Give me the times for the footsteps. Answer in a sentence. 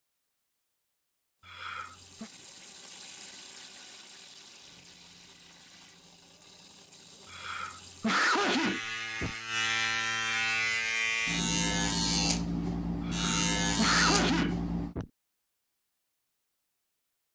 The footsteps can't be heard in this clip.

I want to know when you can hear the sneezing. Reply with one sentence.
The sneezing can be heard from 1.4 to 2.3 s, from 7.3 to 9.3 s and from 13.1 to 15.1 s.